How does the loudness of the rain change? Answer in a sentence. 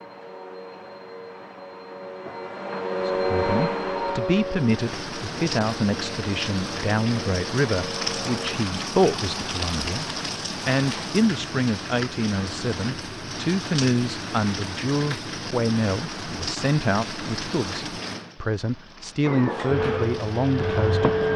The loudness of the rain goes down.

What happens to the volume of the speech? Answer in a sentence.
The volume of the speech stays about the same.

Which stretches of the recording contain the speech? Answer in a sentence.
The speech can be heard from 3.0 to 10.1 s and from 10.7 to 21.1 s.